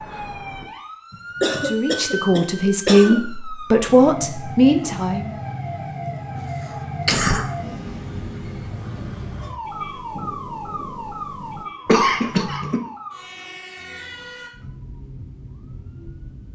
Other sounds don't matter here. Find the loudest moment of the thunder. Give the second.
10 s.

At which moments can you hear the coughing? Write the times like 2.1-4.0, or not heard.
1.1-3.2, 6.7-7.5, 11.8-12.8.